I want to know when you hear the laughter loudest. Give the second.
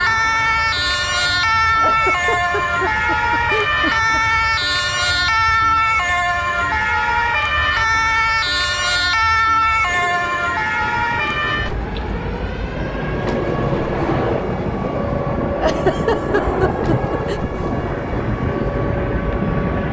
16 s.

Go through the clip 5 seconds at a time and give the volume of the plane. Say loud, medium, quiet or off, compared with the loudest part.
quiet, quiet, loud, loud.